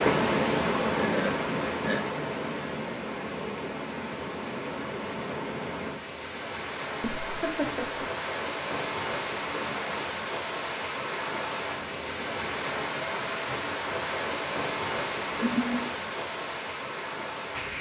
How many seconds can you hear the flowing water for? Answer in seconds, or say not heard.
18 s.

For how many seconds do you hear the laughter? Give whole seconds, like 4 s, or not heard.
4 s.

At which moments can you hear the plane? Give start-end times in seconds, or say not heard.
not heard.